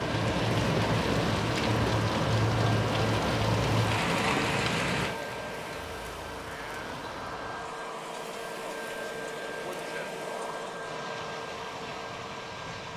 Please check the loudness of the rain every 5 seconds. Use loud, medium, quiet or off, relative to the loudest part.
loud, quiet, quiet.